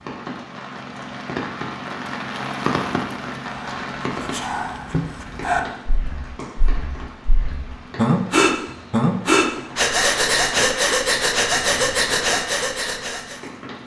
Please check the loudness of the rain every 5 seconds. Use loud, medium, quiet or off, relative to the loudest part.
loud, medium, medium.